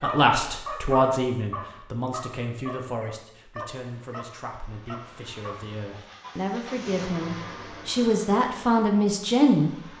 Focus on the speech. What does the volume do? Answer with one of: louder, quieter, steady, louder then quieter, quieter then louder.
quieter then louder.